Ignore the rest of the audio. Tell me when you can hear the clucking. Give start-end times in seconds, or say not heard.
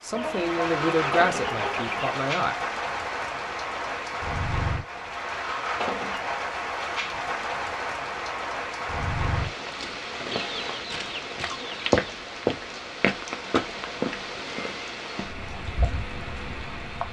0.1-2.1, 10.3-11.9.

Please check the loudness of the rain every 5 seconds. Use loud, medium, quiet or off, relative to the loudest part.
loud, loud, loud, medium.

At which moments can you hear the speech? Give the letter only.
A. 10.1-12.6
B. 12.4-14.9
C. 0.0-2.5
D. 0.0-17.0
C.